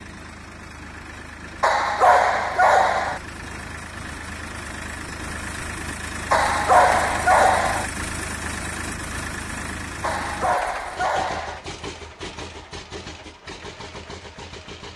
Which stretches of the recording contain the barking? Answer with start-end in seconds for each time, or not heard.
1.6-3.2, 6.3-7.9, 10.0-11.6.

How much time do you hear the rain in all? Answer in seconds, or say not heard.
not heard.